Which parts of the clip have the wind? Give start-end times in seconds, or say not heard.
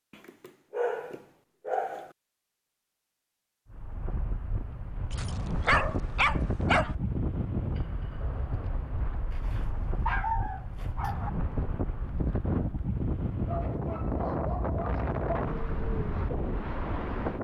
3.7-17.3.